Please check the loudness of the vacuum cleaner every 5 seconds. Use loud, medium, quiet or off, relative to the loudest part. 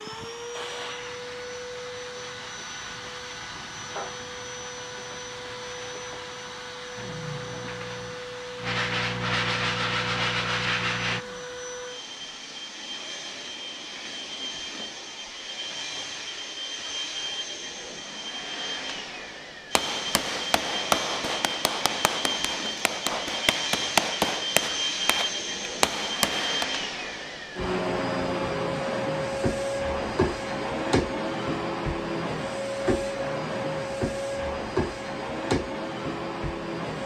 medium, medium, medium, medium, loud, loud, loud, loud.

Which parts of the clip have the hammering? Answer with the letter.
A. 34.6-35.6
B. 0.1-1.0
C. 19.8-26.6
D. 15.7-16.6
C.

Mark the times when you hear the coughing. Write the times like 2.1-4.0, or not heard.
0.1-1.0.